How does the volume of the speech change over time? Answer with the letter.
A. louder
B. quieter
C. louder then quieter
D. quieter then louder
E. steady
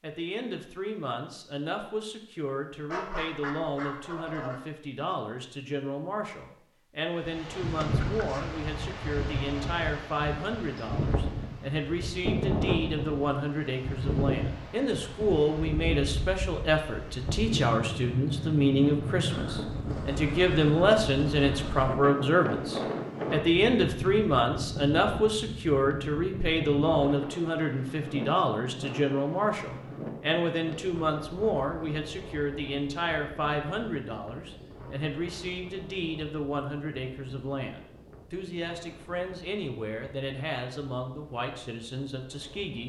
C.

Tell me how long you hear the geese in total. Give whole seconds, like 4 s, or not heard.
2 s.